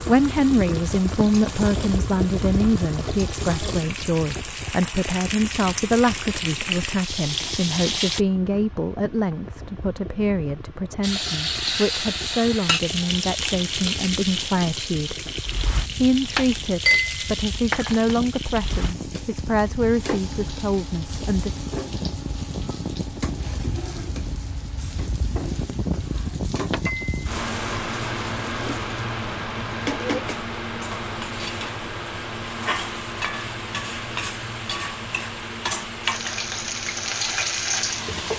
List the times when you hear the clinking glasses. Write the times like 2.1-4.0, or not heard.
16.4-18.1, 26.7-27.1.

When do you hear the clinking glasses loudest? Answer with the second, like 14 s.
17 s.